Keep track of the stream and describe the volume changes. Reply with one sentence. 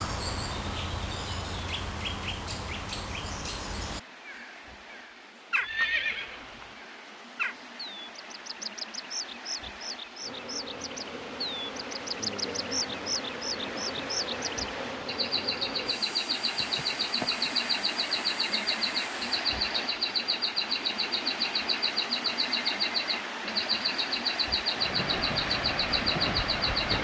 The loudness of the stream goes up.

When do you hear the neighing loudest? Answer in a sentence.
The loudest moment of the neighing is at 6 seconds.